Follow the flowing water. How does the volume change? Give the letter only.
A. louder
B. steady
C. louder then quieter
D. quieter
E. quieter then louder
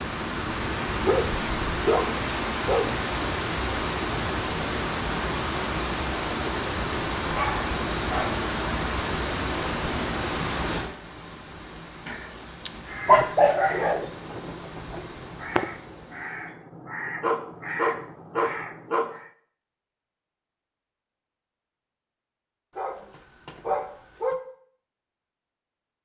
D.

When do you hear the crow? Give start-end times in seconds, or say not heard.
12.7-19.3.